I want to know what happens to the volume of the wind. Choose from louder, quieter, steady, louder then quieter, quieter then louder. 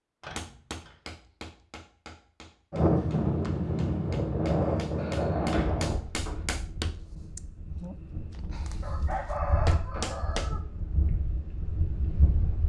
quieter then louder.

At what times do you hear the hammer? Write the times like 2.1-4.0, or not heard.
0.3-8.9, 9.7-10.6.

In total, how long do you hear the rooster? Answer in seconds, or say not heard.
2 s.